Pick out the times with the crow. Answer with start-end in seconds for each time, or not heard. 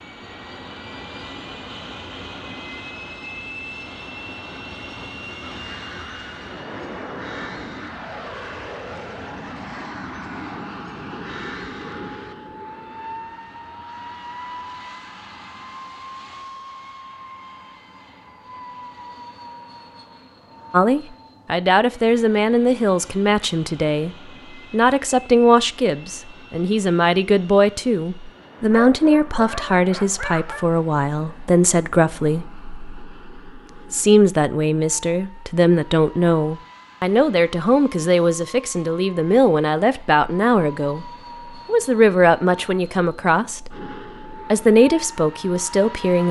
5.4-12.6.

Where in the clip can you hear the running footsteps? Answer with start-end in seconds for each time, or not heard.
not heard.